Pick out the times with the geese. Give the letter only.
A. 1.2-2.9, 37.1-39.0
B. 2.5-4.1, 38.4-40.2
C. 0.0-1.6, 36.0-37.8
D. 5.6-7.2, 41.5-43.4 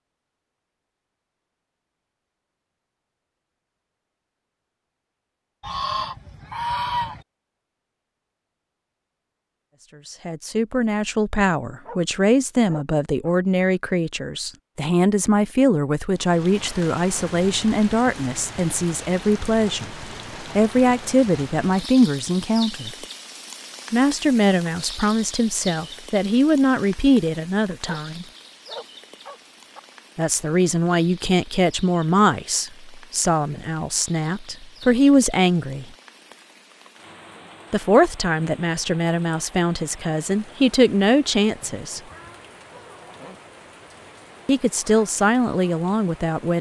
D.